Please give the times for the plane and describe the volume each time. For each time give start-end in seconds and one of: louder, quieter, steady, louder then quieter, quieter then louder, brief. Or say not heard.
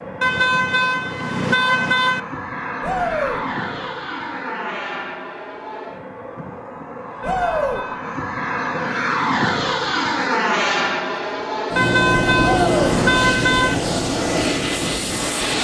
0.0-15.5 louder.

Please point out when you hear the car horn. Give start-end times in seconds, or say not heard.
0.2-2.2, 7.2-8.1, 11.8-13.8.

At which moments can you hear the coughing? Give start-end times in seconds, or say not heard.
not heard.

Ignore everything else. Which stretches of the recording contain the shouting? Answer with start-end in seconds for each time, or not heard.
2.8-3.4, 7.2-7.8, 12.4-13.0.